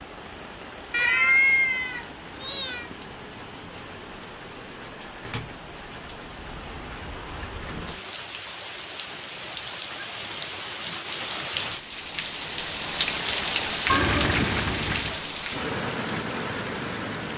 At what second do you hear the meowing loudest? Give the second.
1 s.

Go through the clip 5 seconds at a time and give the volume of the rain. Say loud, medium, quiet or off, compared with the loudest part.
quiet, medium, loud, loud.